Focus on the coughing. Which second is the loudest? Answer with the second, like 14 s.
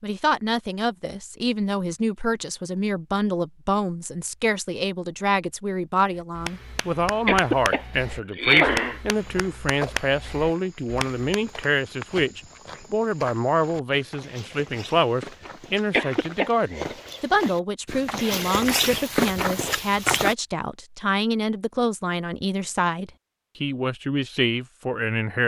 9 s.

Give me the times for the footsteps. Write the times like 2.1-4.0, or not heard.
9.1-20.4.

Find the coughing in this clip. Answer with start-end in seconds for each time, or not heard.
7.2-9.0, 15.9-16.5.